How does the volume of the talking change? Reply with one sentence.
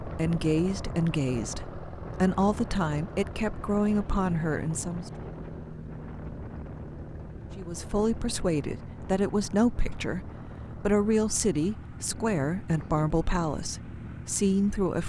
The loudness of the talking stays about the same.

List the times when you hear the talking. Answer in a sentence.
The talking can be heard from 0.0 to 5.1 s and from 7.5 to 15.0 s.